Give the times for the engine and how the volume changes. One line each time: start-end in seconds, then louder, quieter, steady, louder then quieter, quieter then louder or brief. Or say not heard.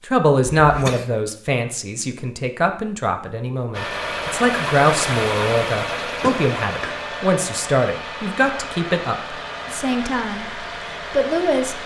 3.7-11.8 quieter.